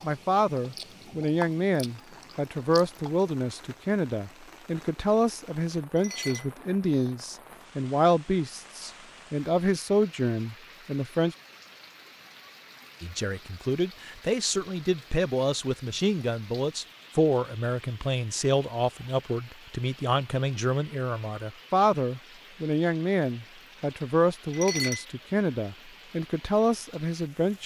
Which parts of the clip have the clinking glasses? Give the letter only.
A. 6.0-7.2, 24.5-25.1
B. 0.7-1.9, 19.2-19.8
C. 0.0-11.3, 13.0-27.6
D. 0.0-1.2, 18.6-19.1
A.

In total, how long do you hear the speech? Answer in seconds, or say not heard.
26 s.